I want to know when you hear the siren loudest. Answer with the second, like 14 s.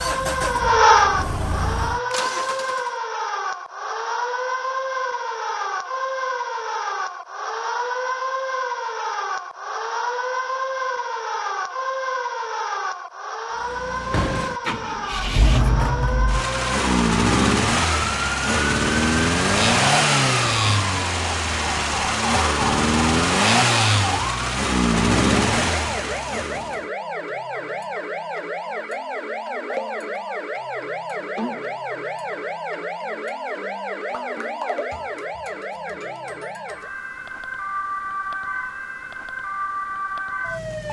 1 s.